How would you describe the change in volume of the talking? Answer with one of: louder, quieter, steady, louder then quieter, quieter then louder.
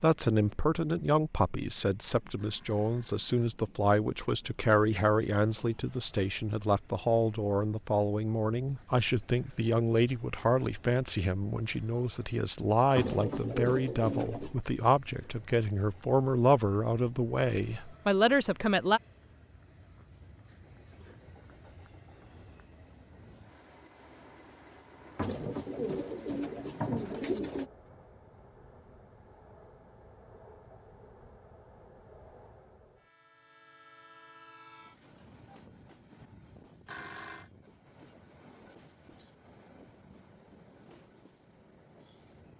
steady.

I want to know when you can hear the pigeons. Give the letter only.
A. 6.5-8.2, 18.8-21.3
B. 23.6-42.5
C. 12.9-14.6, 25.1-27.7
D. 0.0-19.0
C.